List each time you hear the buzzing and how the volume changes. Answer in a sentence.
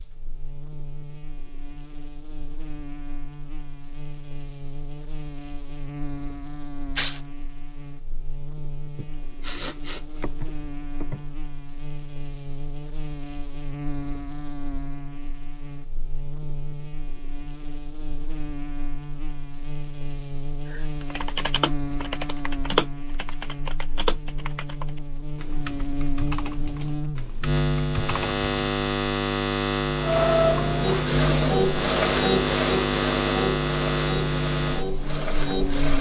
You can hear the buzzing from 0.0 to 35.9 s, getting louder.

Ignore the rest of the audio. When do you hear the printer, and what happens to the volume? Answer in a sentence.
The printer can be heard from 29.9 to 35.9 s, getting quieter.